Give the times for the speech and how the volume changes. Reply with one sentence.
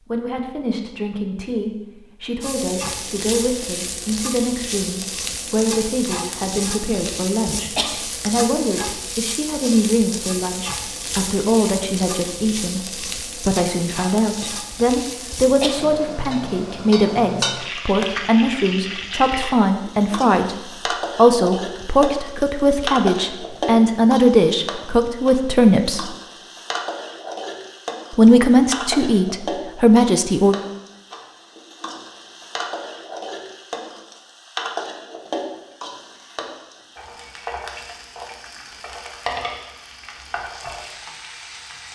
You can hear the speech from 0.1 to 26.1 s, getting louder; and briefly from 28.1 to 30.6 s.